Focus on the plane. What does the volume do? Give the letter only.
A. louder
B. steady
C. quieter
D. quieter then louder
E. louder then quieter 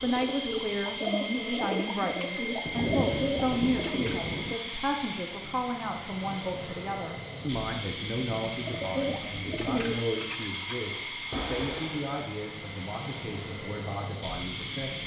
B.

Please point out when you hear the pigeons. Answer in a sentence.
The pigeons can be heard from 0.0 to 4.2 s and from 8.5 to 12.1 s.